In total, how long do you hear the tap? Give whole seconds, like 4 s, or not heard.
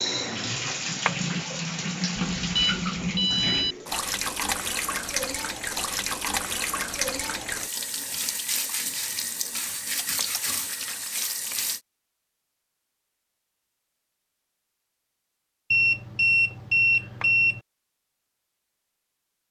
12 s.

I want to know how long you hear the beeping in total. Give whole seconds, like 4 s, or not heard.
3 s.